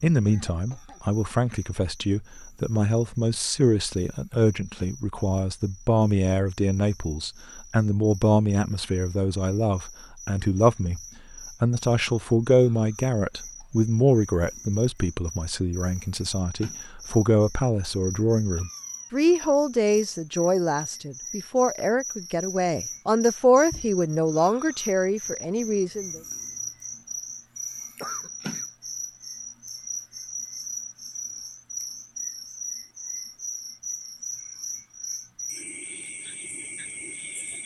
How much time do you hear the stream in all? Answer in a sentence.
You can't hear the stream here.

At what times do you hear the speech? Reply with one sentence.
The speech can be heard from 0.0 to 26.2 s.